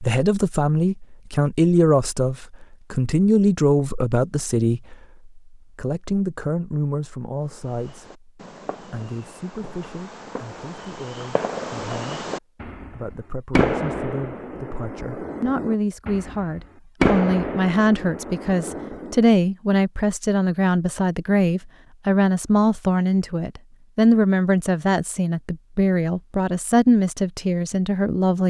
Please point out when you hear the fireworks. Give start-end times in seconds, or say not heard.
7.5-19.2.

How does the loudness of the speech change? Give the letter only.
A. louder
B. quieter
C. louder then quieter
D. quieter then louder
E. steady
D.